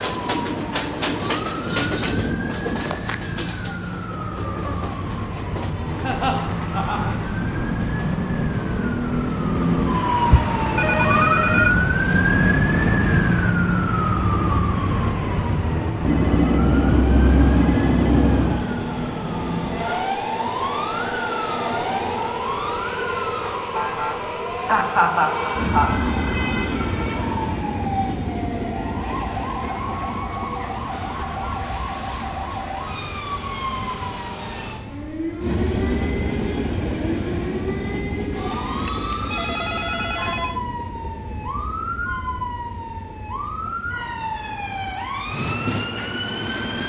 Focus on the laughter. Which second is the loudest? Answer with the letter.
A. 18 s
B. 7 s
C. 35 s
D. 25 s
D.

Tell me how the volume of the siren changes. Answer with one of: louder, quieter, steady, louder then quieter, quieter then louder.
louder then quieter.